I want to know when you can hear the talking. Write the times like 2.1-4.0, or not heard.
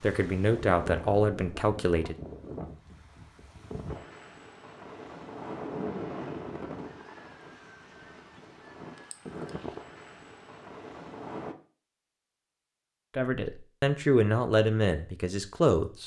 0.0-2.1, 13.2-16.0.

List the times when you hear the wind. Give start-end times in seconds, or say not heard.
0.0-11.6.